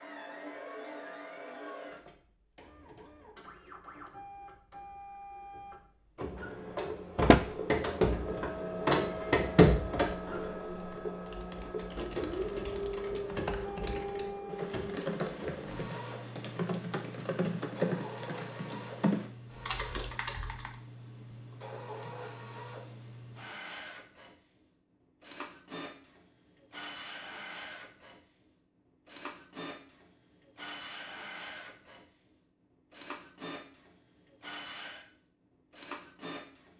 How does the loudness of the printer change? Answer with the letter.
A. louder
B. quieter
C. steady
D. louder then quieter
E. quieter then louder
D.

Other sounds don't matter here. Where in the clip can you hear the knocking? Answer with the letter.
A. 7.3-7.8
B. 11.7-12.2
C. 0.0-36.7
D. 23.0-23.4
A.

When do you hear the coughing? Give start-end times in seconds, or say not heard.
not heard.